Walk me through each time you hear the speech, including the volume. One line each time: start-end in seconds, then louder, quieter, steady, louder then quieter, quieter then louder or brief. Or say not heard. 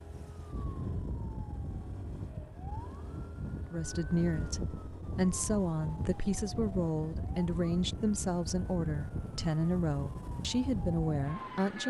3.5-11.8 steady.